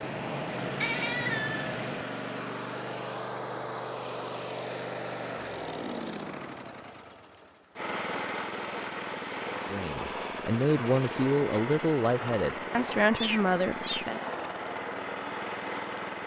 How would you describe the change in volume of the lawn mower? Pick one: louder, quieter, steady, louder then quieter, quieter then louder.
steady.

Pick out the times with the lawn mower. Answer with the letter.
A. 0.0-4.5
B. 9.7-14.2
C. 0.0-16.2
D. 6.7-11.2
C.